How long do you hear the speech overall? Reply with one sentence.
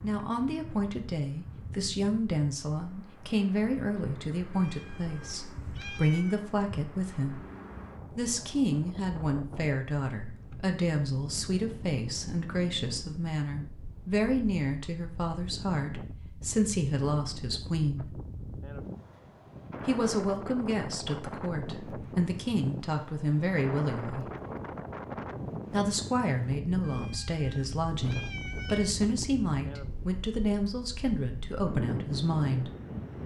You can hear the speech for 29 seconds altogether.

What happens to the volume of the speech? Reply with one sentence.
The loudness of the speech stays about the same.